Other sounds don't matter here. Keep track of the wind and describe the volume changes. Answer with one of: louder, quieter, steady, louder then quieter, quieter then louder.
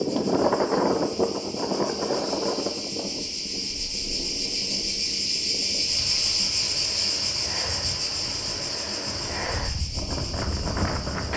quieter then louder.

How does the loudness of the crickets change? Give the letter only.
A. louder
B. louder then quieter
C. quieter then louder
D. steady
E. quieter
B.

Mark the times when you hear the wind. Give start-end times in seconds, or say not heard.
0.0-11.3.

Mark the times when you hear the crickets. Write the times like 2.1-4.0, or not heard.
0.0-11.3.